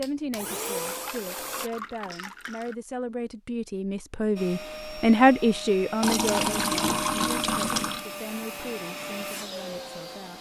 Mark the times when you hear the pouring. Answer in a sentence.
You can hear the pouring from 0.8 to 2.8 s and from 6.0 to 8.1 s.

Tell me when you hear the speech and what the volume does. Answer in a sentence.
The speech can be heard from 0.0 to 10.3 s, getting louder then quieter.